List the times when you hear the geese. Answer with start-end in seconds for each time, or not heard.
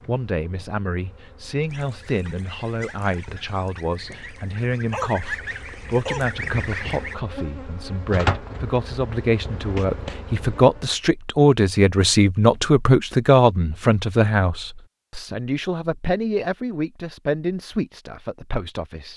1.6-7.2.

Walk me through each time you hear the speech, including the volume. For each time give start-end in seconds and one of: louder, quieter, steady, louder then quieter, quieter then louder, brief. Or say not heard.
0.1-19.1 louder then quieter.